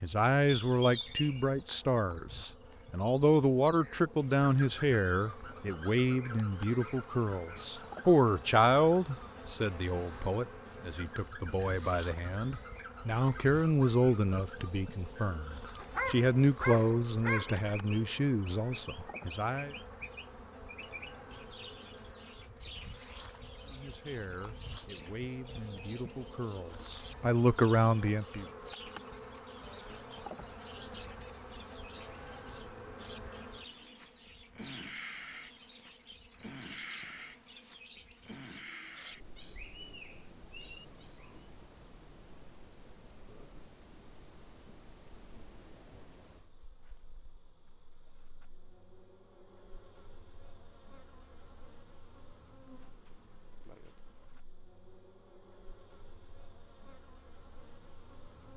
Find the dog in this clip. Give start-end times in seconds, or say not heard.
15.8-17.6.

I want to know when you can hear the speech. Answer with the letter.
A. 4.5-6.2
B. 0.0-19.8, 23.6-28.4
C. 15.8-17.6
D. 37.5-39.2
B.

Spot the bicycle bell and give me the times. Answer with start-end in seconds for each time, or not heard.
not heard.